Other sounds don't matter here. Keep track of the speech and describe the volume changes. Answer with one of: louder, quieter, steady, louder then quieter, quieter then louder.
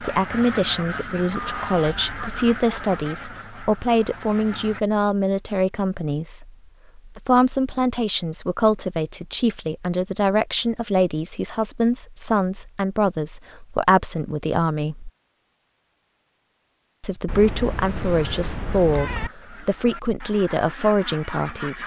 steady.